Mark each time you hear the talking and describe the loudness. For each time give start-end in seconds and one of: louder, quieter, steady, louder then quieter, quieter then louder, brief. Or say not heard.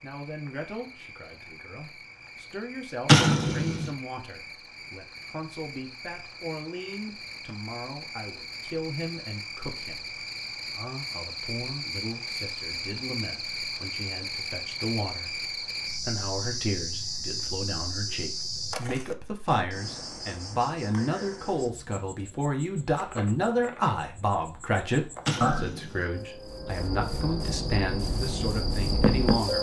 0.0-29.5 louder.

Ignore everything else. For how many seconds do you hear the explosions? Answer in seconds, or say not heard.
2 s.